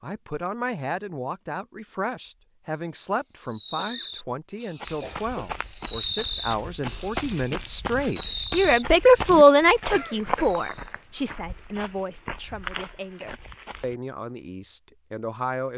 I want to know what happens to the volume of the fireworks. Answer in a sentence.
The loudness of the fireworks goes up, then down.